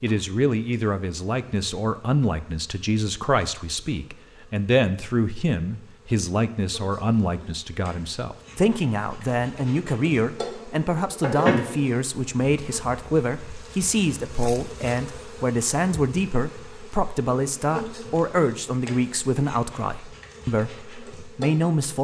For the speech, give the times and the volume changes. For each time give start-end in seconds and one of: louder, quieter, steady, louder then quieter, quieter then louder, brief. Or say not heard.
0.0-21.9 steady.